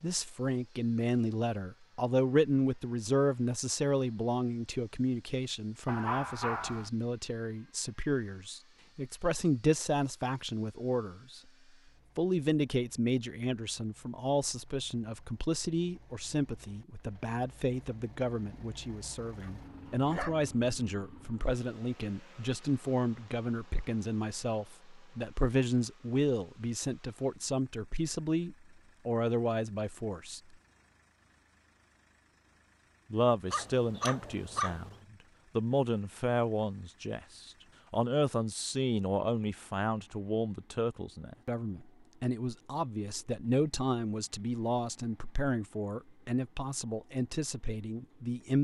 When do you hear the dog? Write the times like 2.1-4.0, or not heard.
5.8-6.9, 19.4-20.4, 33.5-35.0.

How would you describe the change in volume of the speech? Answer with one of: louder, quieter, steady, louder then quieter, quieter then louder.
steady.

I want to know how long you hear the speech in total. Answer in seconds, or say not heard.
45 s.